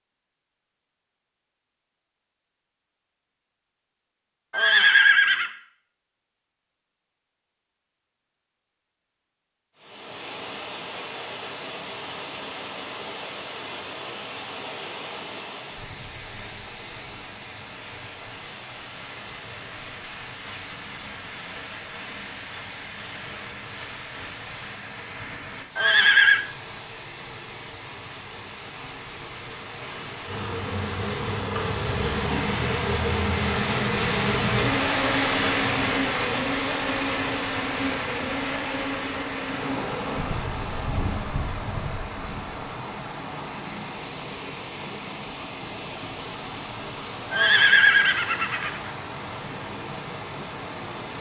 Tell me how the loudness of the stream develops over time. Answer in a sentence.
The volume of the stream goes up, then down.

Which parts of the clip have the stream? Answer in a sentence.
The stream can be heard from 9.8 to 51.1 s.